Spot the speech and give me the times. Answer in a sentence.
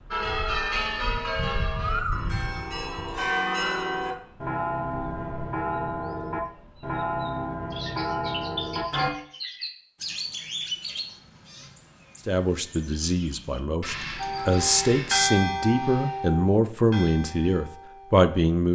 You can hear the speech from 12.2 to 18.6 s.